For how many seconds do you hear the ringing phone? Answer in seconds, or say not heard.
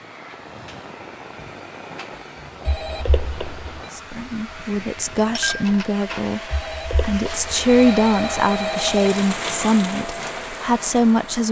4 s.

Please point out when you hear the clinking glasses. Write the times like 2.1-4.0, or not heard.
5.3-6.3.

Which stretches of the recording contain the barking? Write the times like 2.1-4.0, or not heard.
not heard.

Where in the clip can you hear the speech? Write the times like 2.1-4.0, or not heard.
3.9-11.4.